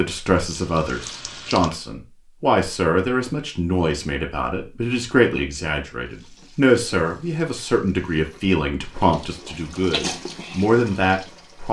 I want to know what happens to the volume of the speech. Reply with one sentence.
The volume of the speech stays about the same.